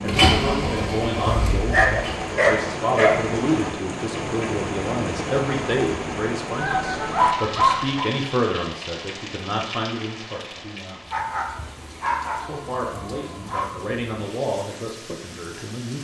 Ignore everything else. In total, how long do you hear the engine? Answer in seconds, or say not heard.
2 s.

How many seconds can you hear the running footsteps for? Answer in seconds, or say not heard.
not heard.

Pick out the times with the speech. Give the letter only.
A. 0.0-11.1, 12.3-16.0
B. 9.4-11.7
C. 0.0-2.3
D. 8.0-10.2
A.